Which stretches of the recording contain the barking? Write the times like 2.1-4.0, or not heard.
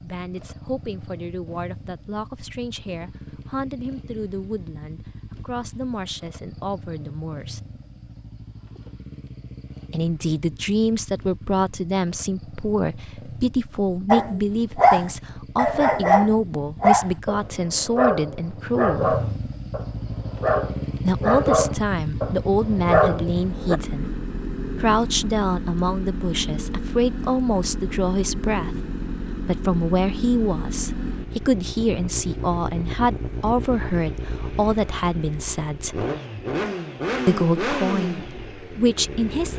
14.1-23.8.